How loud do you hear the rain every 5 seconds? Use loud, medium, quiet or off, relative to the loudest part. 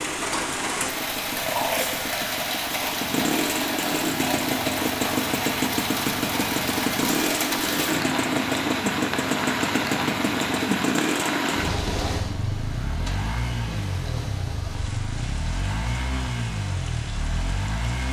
loud, loud, loud, quiet.